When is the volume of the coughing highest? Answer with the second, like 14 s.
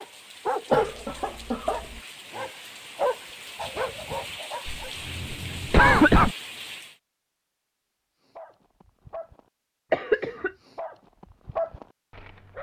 6 s.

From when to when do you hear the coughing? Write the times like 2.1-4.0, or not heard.
0.7-2.0, 4.7-6.3, 9.9-10.5.